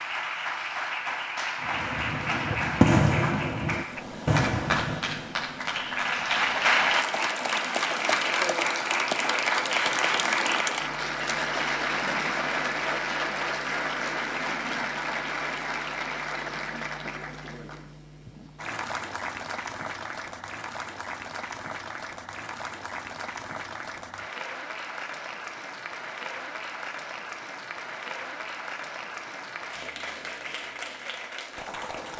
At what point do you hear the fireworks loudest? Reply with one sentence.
The loudest moment of the fireworks is at 3 seconds.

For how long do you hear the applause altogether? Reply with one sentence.
You can hear the applause for 32 seconds altogether.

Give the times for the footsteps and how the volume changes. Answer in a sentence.
The footsteps can't be heard in this clip.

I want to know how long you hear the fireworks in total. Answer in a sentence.
You can hear the fireworks for 4 seconds altogether.